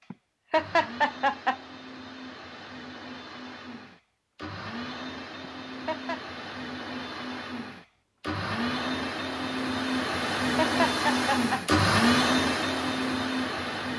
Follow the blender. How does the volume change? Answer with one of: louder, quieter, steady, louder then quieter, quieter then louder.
louder.